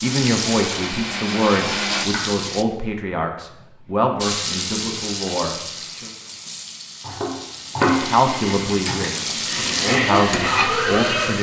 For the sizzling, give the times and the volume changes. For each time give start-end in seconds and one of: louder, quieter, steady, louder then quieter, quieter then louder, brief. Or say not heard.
0.0-2.6 brief
4.2-11.3 quieter then louder.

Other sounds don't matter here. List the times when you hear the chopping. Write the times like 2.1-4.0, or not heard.
1.9-2.5, 3.5-4.0, 7.0-8.9.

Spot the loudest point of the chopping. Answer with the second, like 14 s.
8 s.